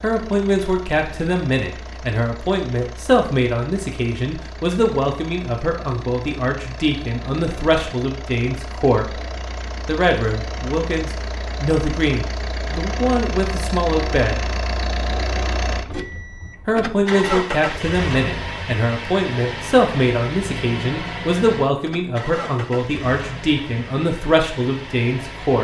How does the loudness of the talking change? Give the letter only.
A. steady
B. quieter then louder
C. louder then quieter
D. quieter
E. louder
A.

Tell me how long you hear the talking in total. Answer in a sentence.
The talking can be heard for 23 seconds in total.